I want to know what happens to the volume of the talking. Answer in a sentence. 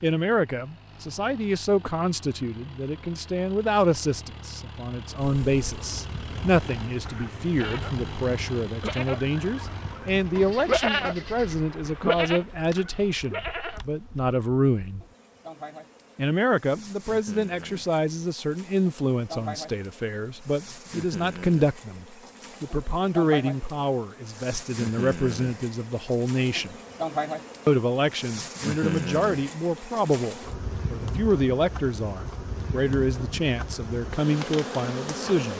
The loudness of the talking stays about the same.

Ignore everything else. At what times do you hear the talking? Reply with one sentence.
You can hear the talking from 0.0 to 15.1 s, from 16.1 to 26.8 s and from 27.6 to 35.5 s.